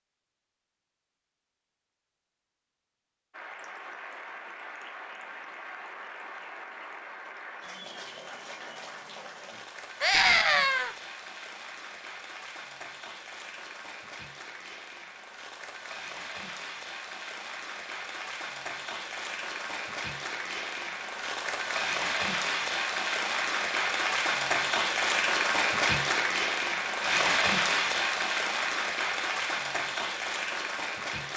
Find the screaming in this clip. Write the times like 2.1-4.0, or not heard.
10.0-10.9.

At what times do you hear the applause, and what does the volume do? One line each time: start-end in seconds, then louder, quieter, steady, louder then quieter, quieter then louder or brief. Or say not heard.
3.3-31.3 louder.